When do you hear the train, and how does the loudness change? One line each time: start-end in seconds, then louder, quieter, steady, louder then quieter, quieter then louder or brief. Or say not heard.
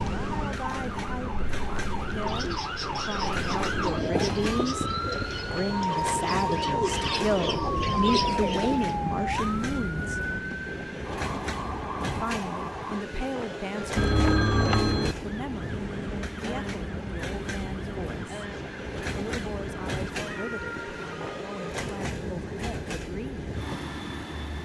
0.0-24.5 steady.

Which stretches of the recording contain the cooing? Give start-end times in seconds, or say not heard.
2.1-9.0.